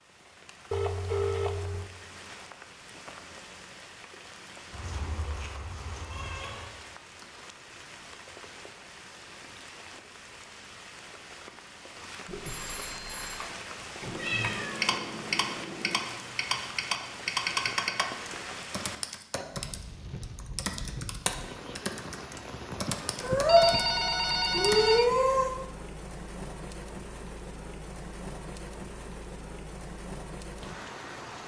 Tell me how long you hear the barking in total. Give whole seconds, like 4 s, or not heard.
not heard.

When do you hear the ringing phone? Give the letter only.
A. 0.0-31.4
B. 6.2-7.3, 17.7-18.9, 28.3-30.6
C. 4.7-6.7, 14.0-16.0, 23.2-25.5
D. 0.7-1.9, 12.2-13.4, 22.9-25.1
D.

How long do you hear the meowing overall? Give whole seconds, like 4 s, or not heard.
6 s.